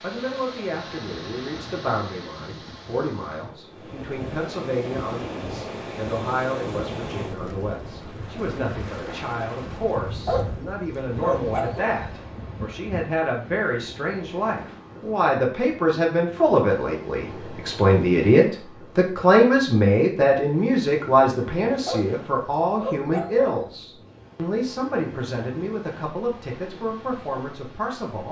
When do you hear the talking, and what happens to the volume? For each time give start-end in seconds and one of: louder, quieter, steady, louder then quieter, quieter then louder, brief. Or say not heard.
0.0-28.2 louder then quieter.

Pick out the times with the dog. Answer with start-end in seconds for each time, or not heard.
10.2-12.2, 21.9-23.7.